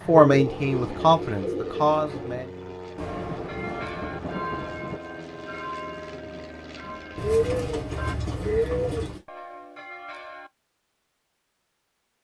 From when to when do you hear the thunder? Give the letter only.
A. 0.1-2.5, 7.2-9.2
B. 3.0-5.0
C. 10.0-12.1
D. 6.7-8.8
B.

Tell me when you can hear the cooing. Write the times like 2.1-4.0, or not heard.
0.1-2.5, 7.2-9.2.